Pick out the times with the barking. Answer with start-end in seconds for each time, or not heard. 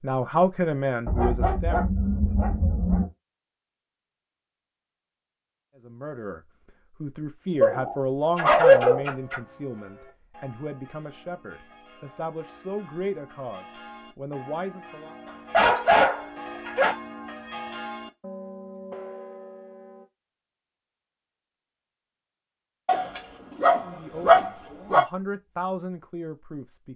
1.1-3.0, 7.6-9.3, 15.5-16.9, 22.9-25.1.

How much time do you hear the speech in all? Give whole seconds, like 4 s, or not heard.
14 s.